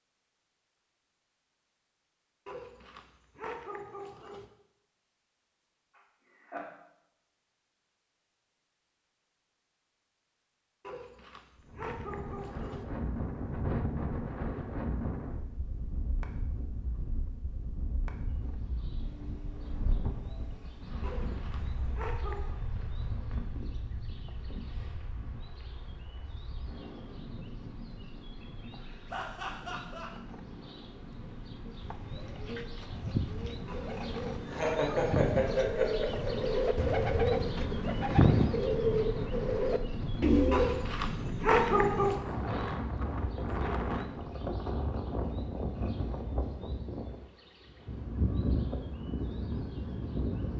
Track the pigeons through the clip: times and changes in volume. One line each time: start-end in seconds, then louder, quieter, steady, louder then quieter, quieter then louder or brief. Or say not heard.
31.6-40.9 louder.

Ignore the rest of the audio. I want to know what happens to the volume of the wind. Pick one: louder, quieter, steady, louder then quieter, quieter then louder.
quieter then louder.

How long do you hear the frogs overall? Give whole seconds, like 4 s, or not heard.
not heard.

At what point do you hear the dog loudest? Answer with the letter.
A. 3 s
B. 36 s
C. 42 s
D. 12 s
C.